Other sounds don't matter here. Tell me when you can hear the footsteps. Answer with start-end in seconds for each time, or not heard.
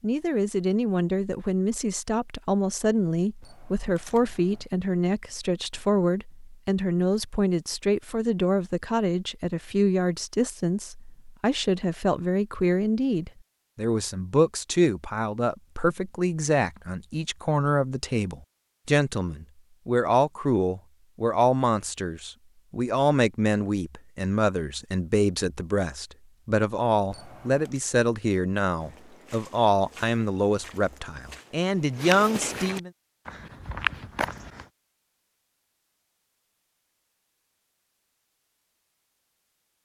28.8-34.6.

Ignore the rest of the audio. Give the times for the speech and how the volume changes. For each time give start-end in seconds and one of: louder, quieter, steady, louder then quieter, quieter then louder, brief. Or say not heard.
0.0-32.9 steady.